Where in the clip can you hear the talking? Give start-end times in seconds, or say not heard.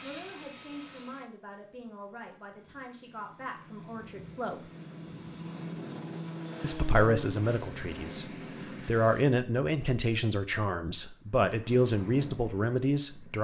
0.0-4.7, 6.6-13.3.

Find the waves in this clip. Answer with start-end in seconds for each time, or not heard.
not heard.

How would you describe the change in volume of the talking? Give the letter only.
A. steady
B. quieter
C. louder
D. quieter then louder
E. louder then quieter
C.